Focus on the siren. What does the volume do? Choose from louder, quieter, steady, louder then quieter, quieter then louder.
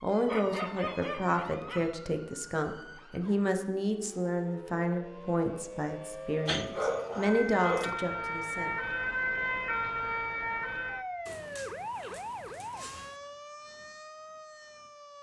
louder then quieter.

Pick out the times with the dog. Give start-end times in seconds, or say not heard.
0.2-1.9, 6.5-8.0, 11.2-13.2.